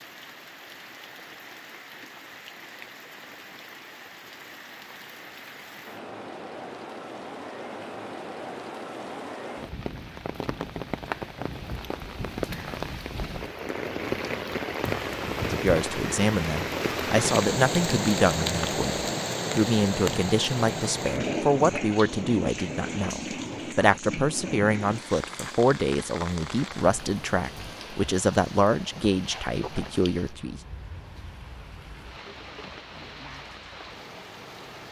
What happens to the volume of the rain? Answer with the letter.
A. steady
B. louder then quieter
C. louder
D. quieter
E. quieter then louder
B.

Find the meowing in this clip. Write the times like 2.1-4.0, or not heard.
not heard.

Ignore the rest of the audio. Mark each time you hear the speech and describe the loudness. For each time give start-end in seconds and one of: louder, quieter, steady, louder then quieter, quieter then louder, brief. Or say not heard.
15.5-30.6 steady.